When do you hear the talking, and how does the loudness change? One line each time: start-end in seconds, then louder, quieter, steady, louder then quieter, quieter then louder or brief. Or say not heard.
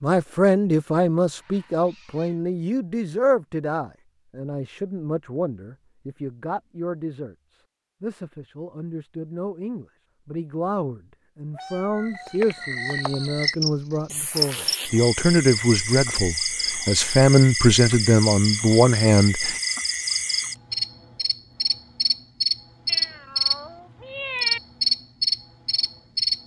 0.0-19.6 quieter then louder.